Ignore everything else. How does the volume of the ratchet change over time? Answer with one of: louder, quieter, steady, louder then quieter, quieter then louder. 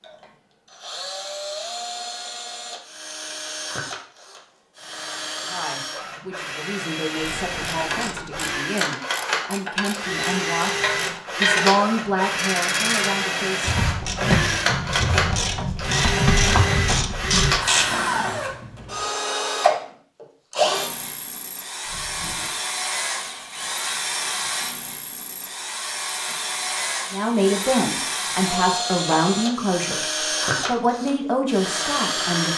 louder.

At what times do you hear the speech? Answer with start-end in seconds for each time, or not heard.
5.5-13.8, 27.1-32.5.